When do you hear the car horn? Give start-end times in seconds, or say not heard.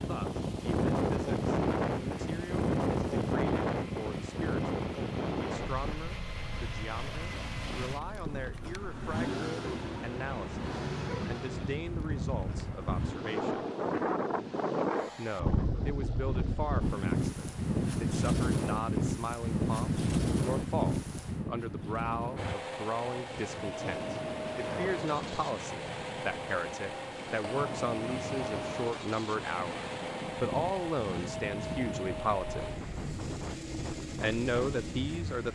not heard.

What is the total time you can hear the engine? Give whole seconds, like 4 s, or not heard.
28 s.